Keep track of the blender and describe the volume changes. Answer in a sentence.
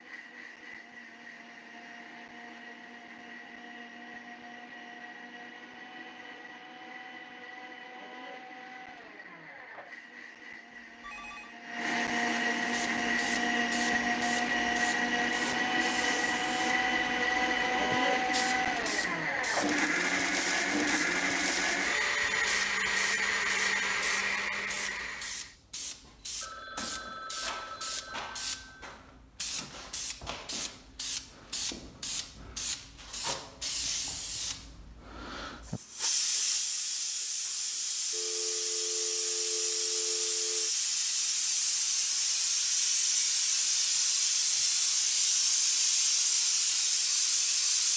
The volume of the blender goes up.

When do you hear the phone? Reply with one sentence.
The phone can be heard from 11.0 to 11.6 s, from 26.4 to 28.8 s and from 38.1 to 40.7 s.